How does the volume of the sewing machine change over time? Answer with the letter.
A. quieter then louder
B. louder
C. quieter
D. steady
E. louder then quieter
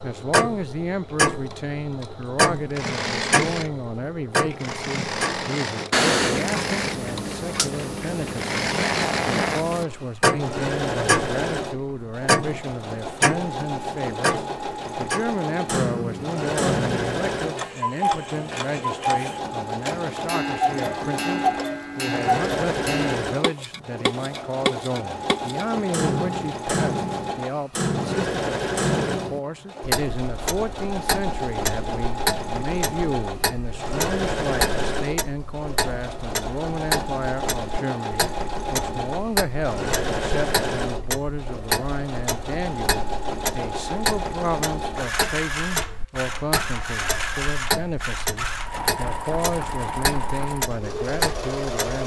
D.